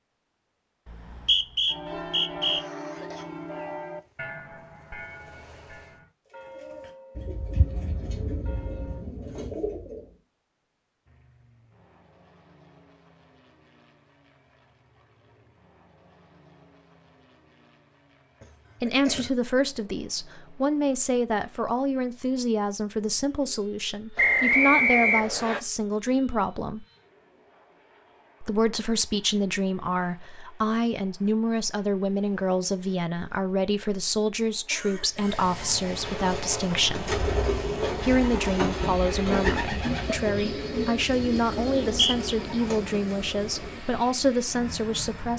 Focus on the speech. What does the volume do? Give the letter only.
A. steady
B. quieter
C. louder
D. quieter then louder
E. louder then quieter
A.